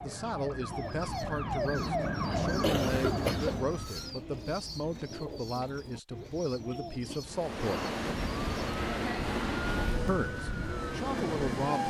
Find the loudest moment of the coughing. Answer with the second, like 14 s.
3 s.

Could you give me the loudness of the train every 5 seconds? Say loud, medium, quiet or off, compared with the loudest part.
off, loud, loud.